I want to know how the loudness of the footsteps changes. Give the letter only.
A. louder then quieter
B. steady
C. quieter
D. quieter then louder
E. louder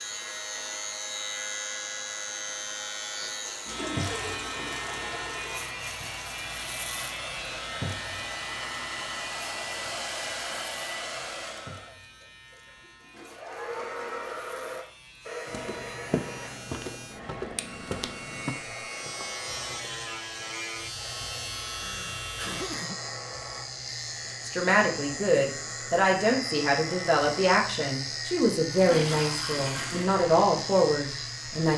C.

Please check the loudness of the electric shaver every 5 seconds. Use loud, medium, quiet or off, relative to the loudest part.
loud, loud, quiet, medium, loud, loud, loud.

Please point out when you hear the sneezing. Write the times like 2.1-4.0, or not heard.
21.7-23.0.